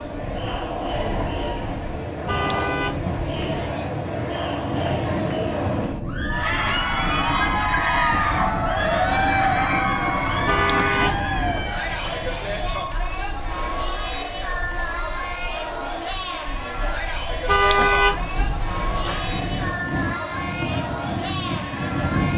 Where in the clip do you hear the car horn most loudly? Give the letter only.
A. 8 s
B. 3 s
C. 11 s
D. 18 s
D.